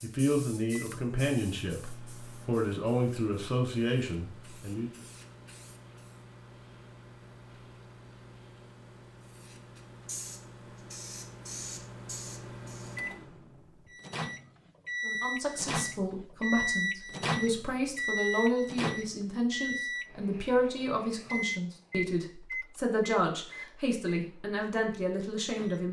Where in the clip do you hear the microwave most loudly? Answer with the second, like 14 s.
17 s.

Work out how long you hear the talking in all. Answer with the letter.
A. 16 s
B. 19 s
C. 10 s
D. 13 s
A.